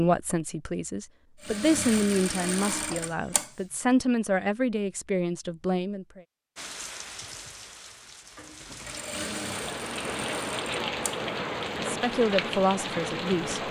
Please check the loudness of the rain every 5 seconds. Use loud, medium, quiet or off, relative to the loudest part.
off, medium, loud.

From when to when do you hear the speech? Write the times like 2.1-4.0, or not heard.
0.0-6.2, 11.8-13.6.